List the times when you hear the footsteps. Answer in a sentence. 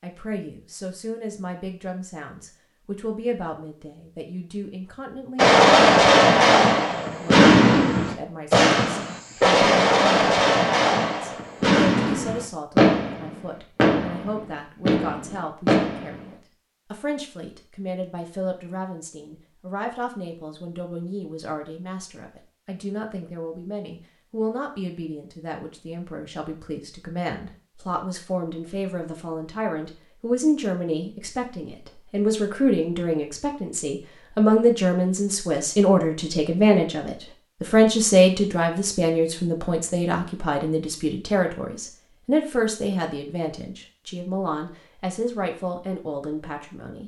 You can't hear the footsteps here.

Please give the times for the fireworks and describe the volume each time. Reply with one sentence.
You can hear the fireworks from 5.3 to 16.3 s, getting quieter.